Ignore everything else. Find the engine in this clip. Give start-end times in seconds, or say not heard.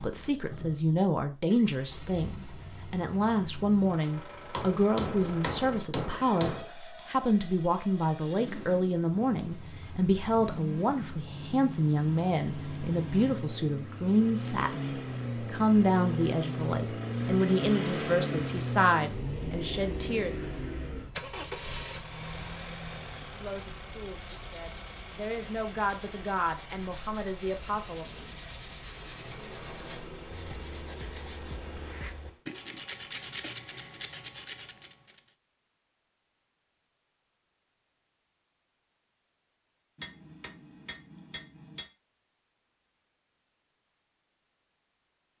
0.0-32.5.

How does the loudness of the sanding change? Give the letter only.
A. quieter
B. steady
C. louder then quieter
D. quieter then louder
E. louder
E.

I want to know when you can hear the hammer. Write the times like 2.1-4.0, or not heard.
4.5-6.7, 40.0-41.9.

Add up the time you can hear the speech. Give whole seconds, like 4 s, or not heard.
25 s.